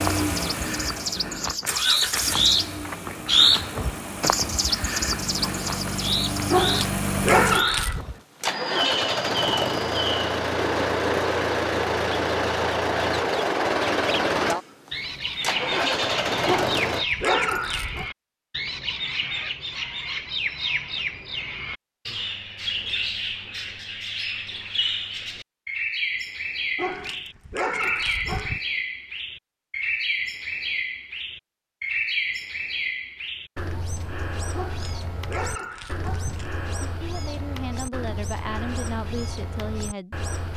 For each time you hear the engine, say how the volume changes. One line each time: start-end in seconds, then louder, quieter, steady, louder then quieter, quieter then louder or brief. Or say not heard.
0.0-17.1 louder.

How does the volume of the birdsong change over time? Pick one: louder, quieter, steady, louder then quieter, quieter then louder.
quieter.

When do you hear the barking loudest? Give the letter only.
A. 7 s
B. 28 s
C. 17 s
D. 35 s
A.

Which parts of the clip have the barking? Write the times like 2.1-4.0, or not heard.
6.5-8.1, 16.4-18.1, 26.8-28.6, 34.5-36.5.